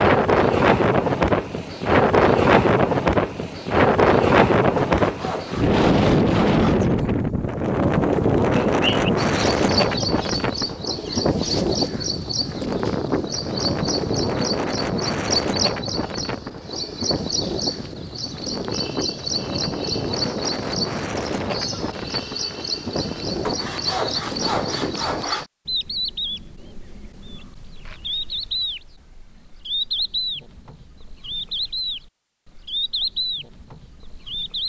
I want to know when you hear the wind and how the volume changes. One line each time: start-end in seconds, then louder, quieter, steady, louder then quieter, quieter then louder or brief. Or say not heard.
0.0-25.2 quieter.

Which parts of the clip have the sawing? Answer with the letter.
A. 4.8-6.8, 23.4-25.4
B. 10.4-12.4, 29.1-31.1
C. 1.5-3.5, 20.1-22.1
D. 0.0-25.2
A.